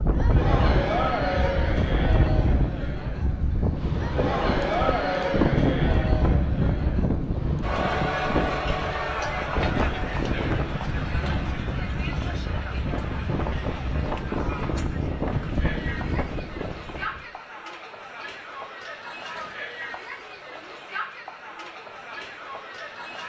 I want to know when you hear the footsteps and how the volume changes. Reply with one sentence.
The footsteps can't be heard in this clip.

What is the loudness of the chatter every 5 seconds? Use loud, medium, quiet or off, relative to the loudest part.
loud, loud, medium, medium, medium.